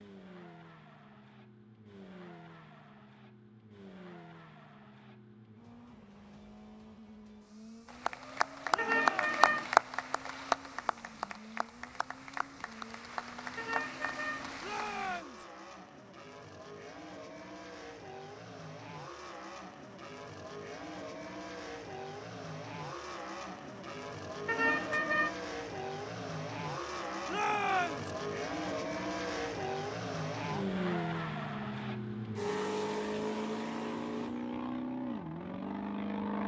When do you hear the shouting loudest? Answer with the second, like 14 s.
28 s.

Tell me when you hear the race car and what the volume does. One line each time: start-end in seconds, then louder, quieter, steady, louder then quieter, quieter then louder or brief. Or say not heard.
0.0-36.4 louder.